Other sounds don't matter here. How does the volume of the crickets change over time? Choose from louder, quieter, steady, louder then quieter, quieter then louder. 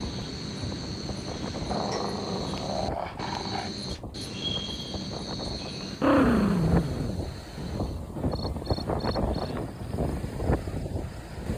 quieter.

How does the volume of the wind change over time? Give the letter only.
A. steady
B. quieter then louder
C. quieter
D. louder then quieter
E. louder
E.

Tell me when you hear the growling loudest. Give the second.
6 s.